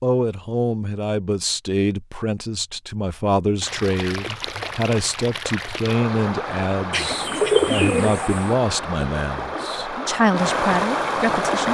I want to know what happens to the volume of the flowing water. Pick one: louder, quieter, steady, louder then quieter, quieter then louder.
louder.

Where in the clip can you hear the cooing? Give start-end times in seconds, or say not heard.
6.9-8.6.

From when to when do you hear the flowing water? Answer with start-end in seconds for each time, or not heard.
3.6-11.7.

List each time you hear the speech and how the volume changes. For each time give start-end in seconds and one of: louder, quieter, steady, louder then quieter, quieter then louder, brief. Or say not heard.
0.0-11.7 steady.